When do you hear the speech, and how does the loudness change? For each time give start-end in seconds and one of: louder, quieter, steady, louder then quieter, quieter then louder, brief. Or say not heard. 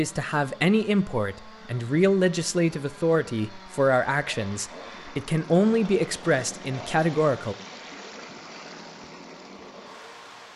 0.0-7.5 steady.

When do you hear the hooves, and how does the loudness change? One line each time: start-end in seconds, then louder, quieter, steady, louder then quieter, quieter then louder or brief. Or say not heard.
not heard.